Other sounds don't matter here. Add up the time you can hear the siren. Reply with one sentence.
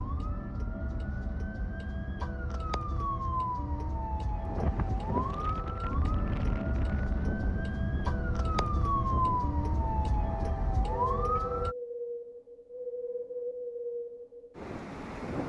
The siren can be heard for 12 seconds in total.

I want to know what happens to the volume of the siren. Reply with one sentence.
The volume of the siren goes up.